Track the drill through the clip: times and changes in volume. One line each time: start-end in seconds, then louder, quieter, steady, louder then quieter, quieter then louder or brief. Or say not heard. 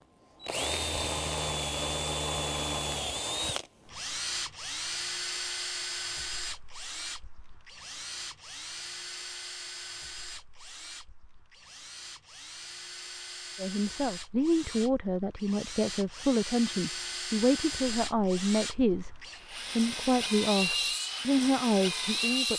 0.4-22.5 quieter then louder.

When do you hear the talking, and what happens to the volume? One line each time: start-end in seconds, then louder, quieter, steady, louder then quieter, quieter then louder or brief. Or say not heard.
13.6-19.1 steady
19.8-22.5 brief.